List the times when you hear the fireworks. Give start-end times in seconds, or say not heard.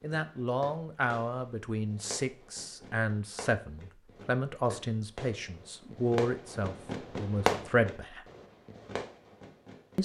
0.0-10.0.